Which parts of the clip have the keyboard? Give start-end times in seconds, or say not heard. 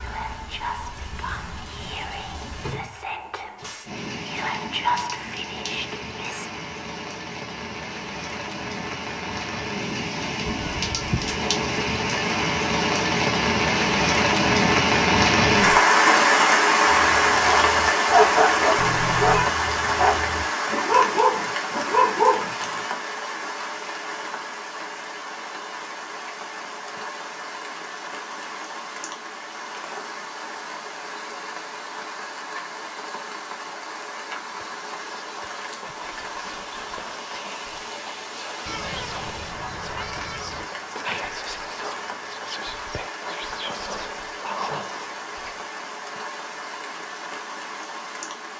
not heard.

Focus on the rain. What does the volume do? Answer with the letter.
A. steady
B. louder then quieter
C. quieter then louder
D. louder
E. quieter
B.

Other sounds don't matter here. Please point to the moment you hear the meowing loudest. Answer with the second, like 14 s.
19 s.